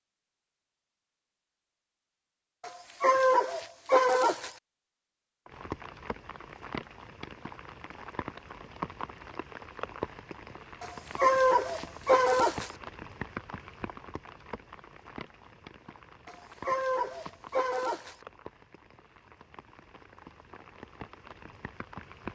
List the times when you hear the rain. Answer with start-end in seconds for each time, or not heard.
5.5-22.3.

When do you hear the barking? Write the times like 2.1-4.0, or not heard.
2.6-4.5, 10.8-12.7, 16.2-18.1.